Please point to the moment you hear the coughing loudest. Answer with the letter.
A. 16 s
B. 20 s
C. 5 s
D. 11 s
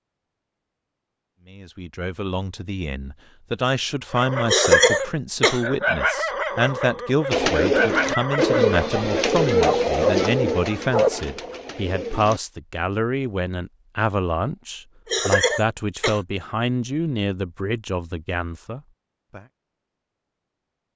C.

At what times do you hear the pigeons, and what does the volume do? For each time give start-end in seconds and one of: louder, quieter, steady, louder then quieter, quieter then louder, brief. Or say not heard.
7.3-12.4 quieter.